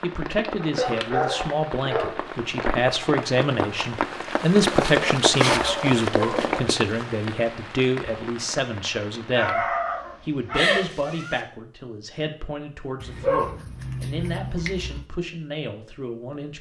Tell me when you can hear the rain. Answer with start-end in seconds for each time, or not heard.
0.0-9.5.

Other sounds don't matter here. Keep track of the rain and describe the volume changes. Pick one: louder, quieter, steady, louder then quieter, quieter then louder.
louder then quieter.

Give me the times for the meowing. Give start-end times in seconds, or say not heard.
10.6-11.4.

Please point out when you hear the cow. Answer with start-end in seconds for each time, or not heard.
not heard.